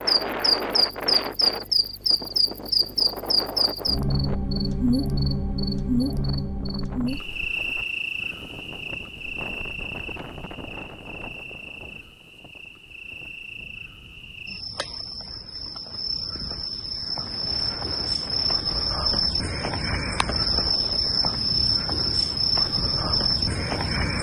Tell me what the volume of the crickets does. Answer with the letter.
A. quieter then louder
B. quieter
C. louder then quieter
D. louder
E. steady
A.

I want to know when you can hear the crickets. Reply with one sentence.
You can hear the crickets from 0.0 to 24.1 s.